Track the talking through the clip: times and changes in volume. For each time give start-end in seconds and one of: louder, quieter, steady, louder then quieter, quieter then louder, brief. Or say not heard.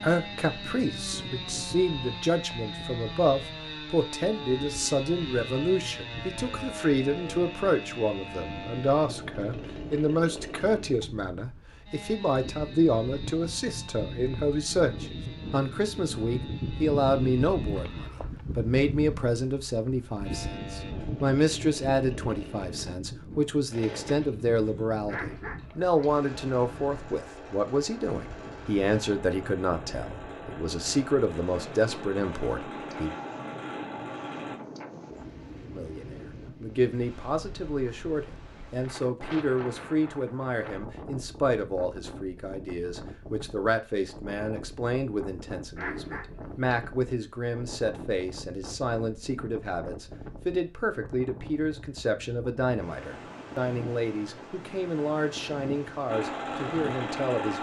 0.0-33.1 steady
35.7-57.5 steady.